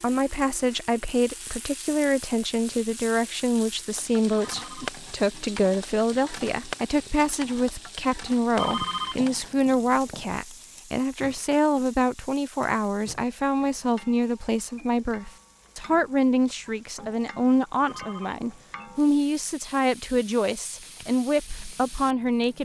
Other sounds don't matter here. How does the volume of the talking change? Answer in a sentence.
The volume of the talking stays about the same.